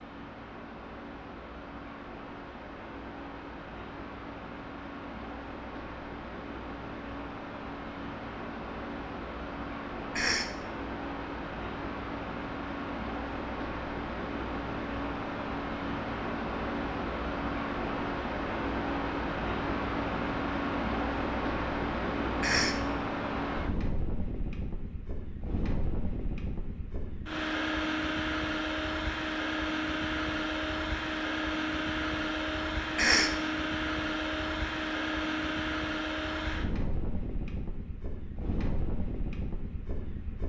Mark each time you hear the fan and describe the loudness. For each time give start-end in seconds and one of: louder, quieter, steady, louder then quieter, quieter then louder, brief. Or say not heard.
0.0-40.4 louder.